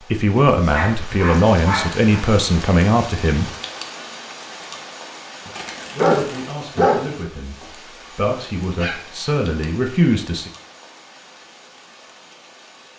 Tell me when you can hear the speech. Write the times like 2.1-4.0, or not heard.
0.1-3.5, 5.9-10.5.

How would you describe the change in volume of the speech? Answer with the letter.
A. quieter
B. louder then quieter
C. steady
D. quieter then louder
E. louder
D.